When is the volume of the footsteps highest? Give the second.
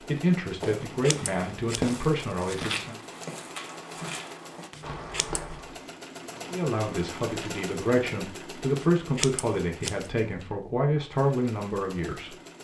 2 s.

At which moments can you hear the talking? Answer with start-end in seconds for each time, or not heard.
0.0-3.0, 6.5-12.3.